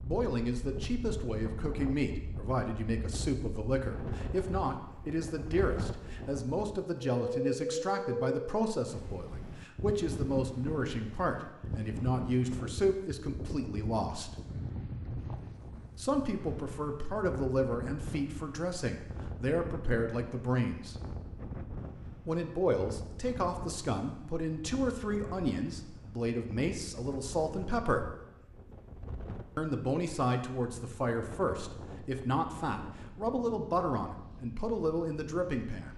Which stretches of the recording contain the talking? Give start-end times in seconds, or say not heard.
0.0-14.3, 15.9-20.9, 22.2-28.1, 29.6-35.9.